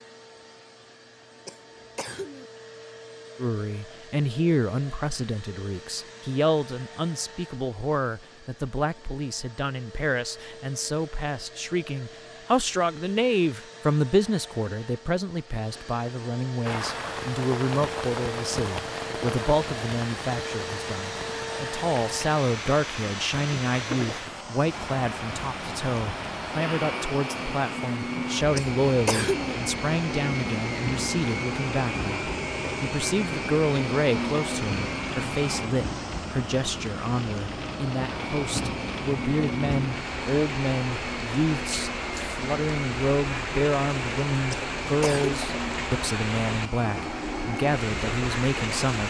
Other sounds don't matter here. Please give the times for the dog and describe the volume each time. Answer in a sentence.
You can't hear the dog here.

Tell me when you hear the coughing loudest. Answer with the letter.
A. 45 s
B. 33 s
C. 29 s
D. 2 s
C.